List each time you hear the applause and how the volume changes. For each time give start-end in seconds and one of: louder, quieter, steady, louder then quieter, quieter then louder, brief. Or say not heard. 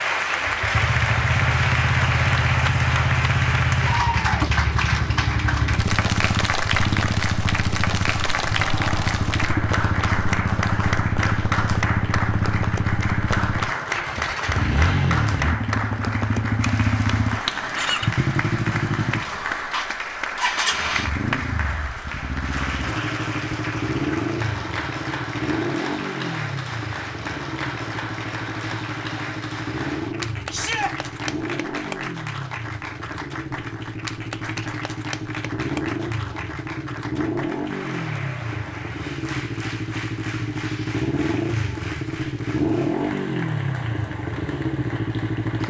0.0-45.6 quieter.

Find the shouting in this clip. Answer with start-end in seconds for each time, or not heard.
30.5-30.9.